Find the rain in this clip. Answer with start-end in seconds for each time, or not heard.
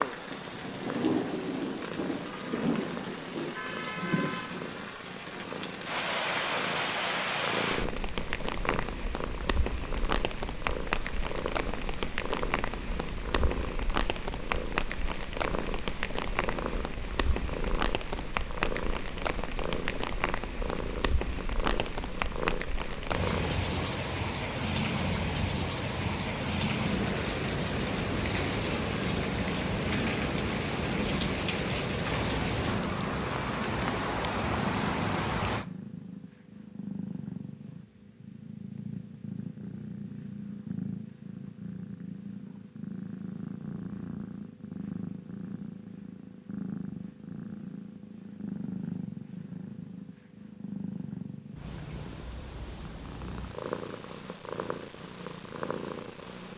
0.0-35.6.